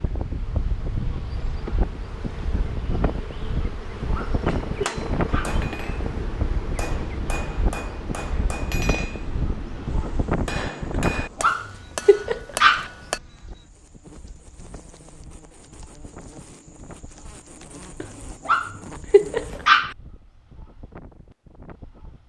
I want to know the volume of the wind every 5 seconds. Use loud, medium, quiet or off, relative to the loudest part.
loud, loud, loud, quiet, quiet.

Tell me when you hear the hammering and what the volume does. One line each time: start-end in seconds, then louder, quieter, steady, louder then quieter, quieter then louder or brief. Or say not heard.
4.5-13.2 steady.